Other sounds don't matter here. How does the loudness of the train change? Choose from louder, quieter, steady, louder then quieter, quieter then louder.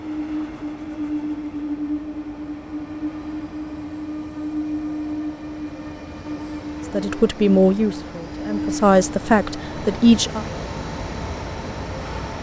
steady.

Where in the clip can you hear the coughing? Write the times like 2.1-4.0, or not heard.
not heard.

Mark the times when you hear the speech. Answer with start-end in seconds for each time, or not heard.
6.9-10.4.